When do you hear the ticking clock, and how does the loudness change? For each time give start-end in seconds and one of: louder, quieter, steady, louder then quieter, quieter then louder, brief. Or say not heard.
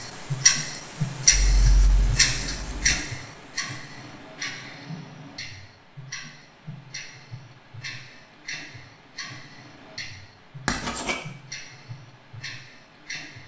0.0-13.4 quieter.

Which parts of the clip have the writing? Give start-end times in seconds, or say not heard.
1.3-3.0, 10.7-11.2.